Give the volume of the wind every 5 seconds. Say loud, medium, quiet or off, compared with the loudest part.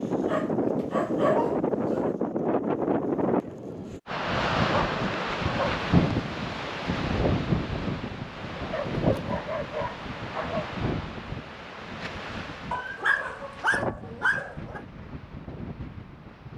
loud, loud, medium, quiet.